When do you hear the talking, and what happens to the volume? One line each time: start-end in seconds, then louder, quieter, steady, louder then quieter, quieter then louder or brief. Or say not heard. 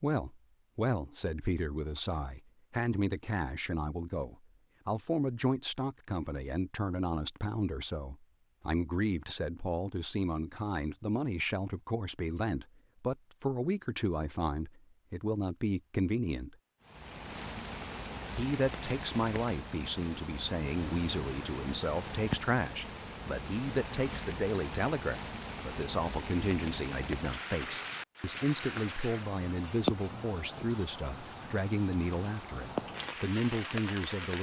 0.0-16.6 steady
18.4-34.3 steady.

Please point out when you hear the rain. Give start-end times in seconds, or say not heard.
16.8-34.3.